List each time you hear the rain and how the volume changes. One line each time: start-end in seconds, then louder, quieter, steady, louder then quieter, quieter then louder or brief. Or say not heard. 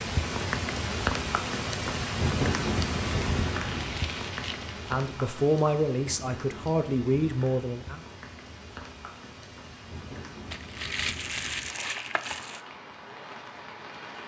0.0-14.2 quieter.